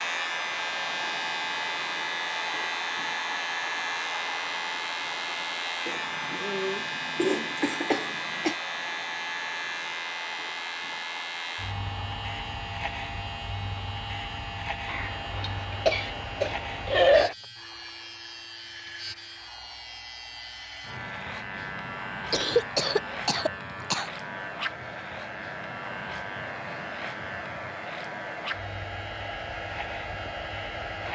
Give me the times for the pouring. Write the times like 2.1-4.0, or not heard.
not heard.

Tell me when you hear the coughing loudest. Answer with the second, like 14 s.
17 s.